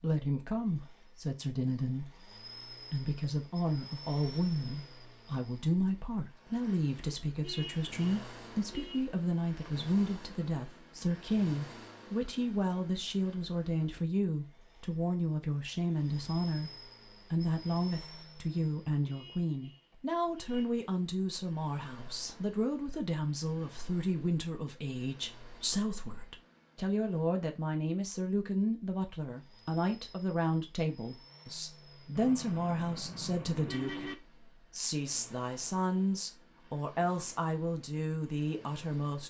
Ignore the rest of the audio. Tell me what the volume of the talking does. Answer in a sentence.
The loudness of the talking stays about the same.